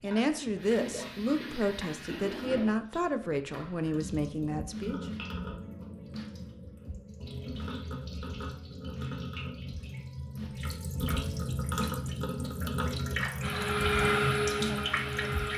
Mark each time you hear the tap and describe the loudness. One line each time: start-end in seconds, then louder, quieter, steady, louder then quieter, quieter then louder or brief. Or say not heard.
0.0-15.5 louder.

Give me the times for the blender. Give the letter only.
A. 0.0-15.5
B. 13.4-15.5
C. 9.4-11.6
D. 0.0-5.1
B.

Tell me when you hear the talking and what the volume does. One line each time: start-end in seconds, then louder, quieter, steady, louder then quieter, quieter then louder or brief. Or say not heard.
0.0-5.1 steady.